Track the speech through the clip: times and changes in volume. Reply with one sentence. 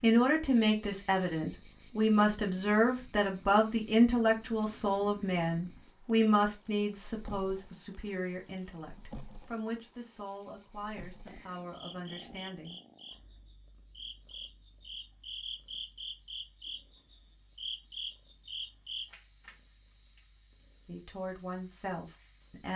You can hear the speech from 0.0 to 12.8 s, getting quieter; and briefly from 20.9 to 22.7 s.